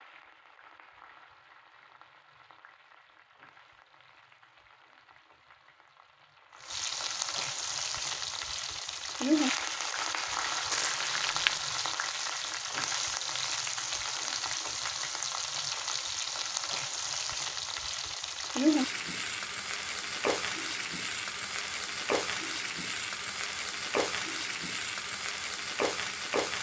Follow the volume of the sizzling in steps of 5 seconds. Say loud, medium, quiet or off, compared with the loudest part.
quiet, loud, loud, loud, loud, loud.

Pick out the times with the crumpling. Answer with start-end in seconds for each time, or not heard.
10.7-11.7.